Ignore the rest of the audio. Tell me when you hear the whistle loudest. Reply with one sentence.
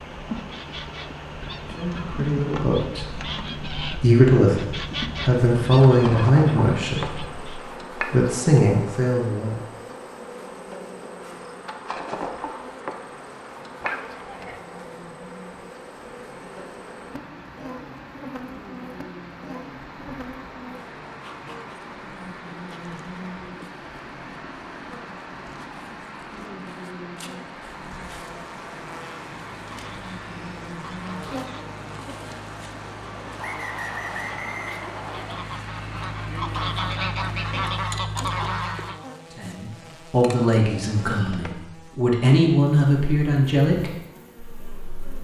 The volume of the whistle peaks at 34 seconds.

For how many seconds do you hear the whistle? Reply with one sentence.
The whistle can be heard for 2 seconds in total.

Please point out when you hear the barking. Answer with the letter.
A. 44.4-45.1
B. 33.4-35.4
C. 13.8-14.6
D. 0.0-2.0
C.